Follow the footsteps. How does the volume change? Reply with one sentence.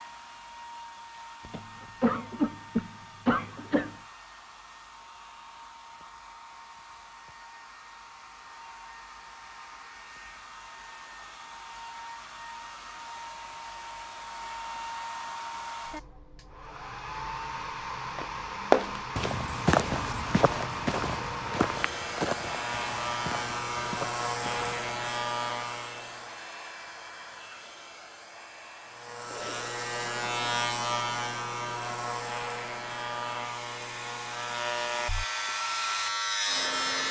The loudness of the footsteps goes down.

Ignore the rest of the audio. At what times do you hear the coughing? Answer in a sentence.
The coughing can be heard from 1.4 to 4.0 s.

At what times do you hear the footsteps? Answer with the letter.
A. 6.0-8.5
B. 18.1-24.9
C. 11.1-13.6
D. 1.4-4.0
B.